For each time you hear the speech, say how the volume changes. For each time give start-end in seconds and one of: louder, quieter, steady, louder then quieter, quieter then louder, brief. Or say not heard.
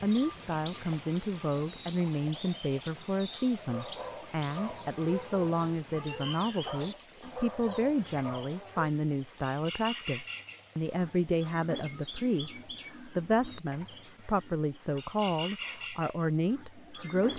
0.0-17.3 steady.